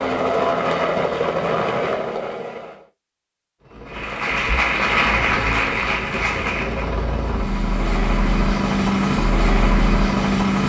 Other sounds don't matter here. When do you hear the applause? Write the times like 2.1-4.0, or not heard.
3.9-7.0.